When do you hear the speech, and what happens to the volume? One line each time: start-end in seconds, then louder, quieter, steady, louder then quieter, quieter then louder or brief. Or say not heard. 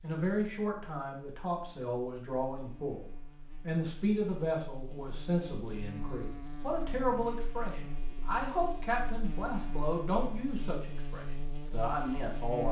0.0-12.6 steady.